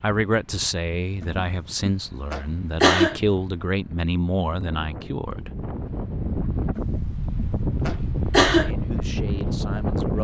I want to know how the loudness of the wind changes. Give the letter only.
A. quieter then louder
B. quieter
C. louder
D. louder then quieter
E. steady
C.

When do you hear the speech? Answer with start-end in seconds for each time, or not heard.
0.0-5.5, 7.9-10.2.